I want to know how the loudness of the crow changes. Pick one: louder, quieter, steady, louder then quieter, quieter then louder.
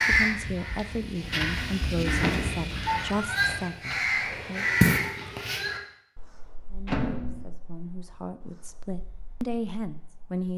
louder then quieter.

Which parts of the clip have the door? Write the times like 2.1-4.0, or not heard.
2.2-2.9, 6.8-7.5.